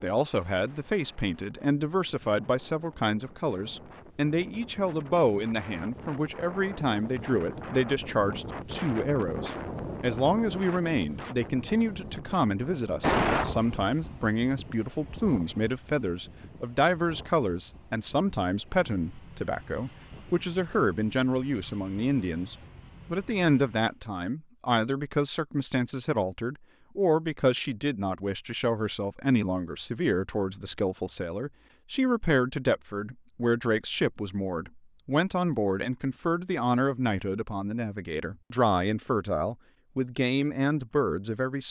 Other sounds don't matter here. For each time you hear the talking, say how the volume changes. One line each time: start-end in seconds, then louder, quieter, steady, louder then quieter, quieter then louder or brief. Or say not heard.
0.0-41.6 steady.